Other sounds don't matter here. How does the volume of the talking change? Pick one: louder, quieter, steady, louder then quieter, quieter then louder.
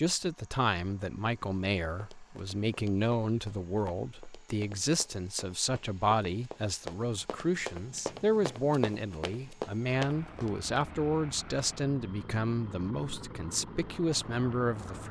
steady.